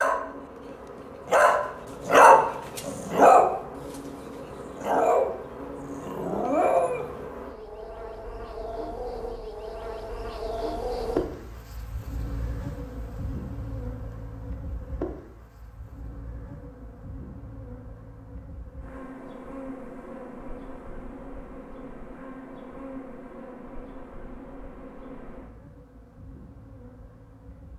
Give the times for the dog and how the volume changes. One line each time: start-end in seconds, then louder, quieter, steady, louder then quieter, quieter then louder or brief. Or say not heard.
0.0-7.2 louder then quieter.